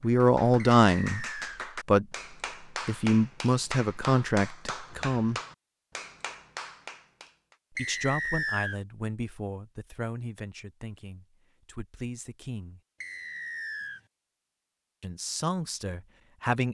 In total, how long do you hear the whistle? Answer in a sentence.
The whistle can be heard for 3 seconds in total.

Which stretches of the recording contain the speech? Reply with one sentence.
The speech can be heard from 0.0 to 2.0 s, from 2.9 to 5.4 s, from 7.8 to 12.8 s and from 15.0 to 16.6 s.